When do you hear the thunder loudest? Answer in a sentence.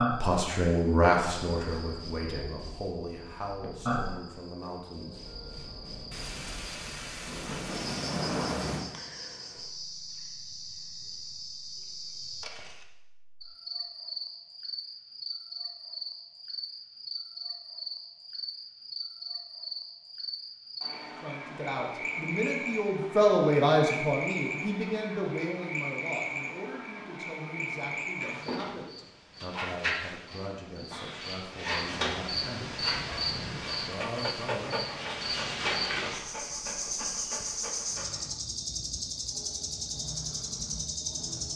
The loudest moment of the thunder is at 8 seconds.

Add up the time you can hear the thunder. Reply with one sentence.
You can hear the thunder for 3 seconds altogether.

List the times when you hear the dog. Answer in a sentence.
You can hear the dog from 32.9 to 38.3 s.